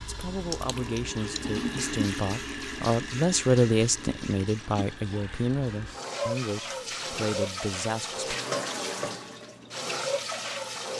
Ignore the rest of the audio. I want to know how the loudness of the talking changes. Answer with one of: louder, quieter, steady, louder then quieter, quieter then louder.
louder then quieter.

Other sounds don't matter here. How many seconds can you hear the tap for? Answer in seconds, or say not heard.
11 s.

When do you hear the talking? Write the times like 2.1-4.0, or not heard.
0.0-8.3.